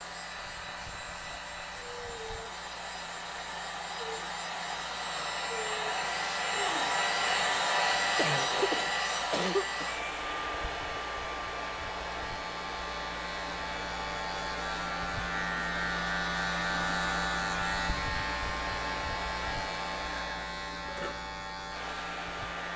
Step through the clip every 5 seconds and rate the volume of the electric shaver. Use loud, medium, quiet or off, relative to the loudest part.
quiet, quiet, medium, loud, medium.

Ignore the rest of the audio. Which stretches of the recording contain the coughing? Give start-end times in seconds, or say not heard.
8.2-9.9.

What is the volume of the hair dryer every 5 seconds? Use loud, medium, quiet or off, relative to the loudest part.
medium, loud, medium, medium, medium.